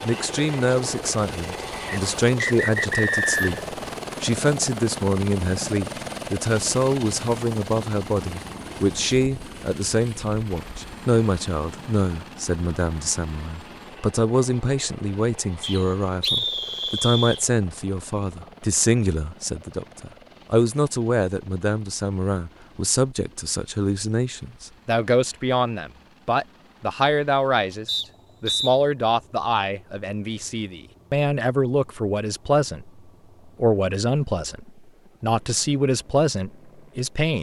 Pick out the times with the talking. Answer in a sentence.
You can hear the talking from 0.0 to 32.9 s and from 33.6 to 37.3 s.